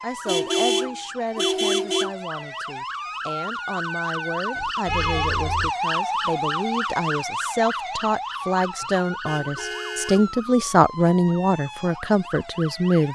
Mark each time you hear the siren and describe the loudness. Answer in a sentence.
You can hear the siren from 0.0 to 13.1 s, getting louder then quieter.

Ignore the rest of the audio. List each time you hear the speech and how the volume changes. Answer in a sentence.
The speech can be heard from 0.0 to 13.1 s, getting louder.